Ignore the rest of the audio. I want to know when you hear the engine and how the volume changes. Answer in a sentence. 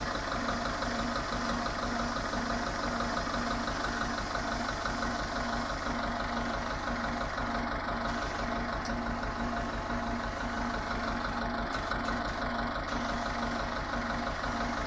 The engine can be heard from 0.0 to 14.8 s, at a steady volume.